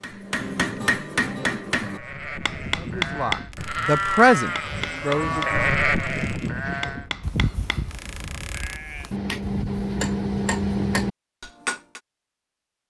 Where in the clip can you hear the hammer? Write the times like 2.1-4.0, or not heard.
0.0-12.0.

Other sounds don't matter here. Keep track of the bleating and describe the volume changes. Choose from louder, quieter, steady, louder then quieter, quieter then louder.
louder then quieter.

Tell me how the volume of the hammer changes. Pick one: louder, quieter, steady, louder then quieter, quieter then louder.
quieter then louder.